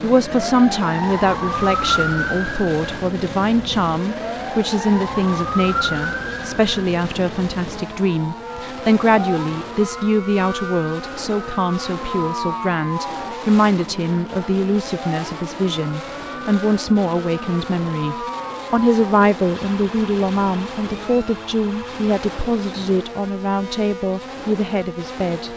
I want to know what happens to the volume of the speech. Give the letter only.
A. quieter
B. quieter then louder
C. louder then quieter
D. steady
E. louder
D.